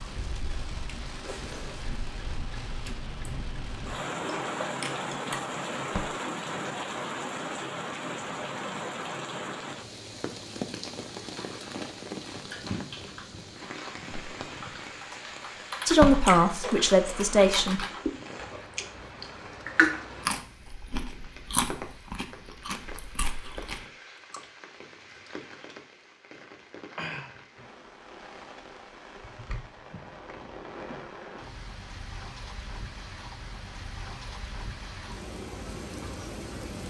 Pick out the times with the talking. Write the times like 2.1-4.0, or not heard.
15.8-17.9.